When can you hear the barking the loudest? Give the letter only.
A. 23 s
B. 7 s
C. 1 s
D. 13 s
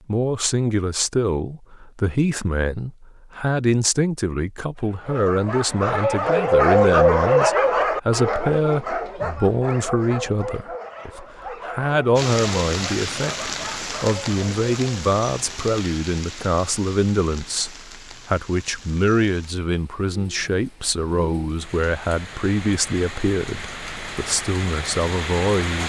B.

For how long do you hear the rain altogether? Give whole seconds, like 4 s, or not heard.
14 s.